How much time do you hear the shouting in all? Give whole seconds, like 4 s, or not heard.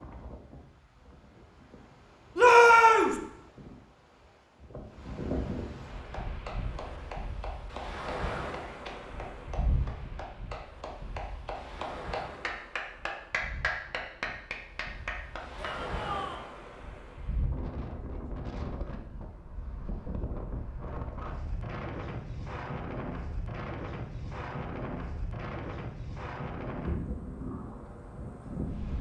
2 s.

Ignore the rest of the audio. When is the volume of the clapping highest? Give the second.
14 s.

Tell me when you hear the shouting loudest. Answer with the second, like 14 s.
3 s.